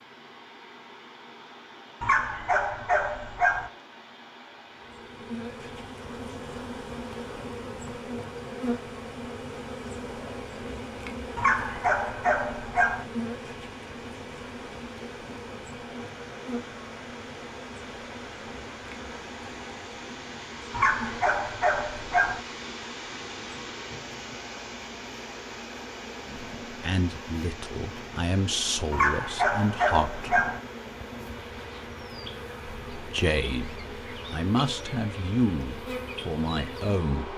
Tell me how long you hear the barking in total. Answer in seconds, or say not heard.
7 s.